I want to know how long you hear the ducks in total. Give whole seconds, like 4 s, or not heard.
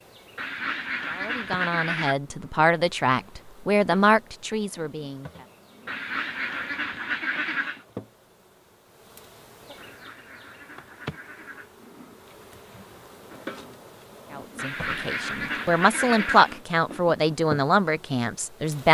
8 s.